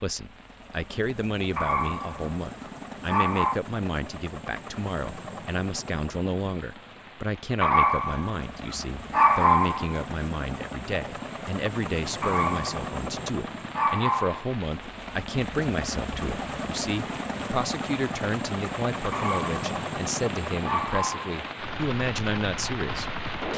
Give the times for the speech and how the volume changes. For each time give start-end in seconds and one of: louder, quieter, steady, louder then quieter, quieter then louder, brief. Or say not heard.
0.0-23.1 steady.